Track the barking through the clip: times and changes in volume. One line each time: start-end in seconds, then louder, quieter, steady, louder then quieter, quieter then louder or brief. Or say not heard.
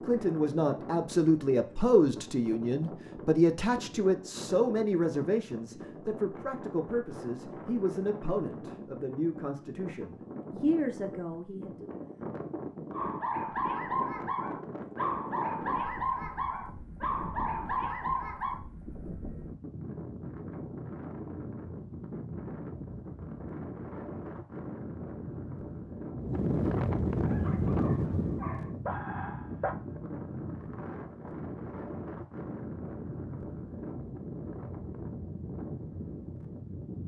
12.9-18.6 steady
27.2-29.8 brief.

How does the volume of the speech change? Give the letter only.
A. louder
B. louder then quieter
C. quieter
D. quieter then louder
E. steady
C.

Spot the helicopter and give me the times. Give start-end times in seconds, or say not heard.
not heard.